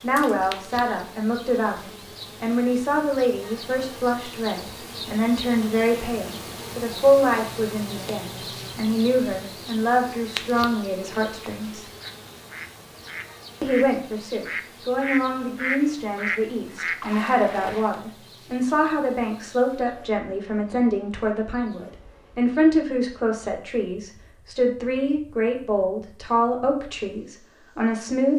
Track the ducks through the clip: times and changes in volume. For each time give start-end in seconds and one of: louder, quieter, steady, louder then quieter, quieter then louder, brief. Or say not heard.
11.1-17.1 louder.